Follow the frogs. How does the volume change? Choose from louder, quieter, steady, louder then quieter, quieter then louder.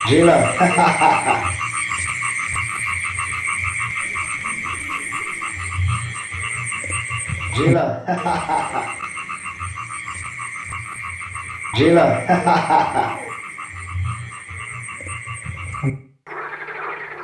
quieter.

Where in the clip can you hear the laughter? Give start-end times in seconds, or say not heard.
0.0-1.5, 7.5-8.9, 11.7-13.3.